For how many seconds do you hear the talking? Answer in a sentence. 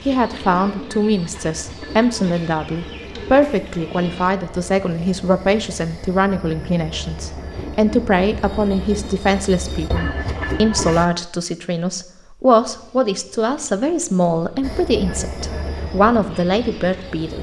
You can hear the talking for 17 seconds altogether.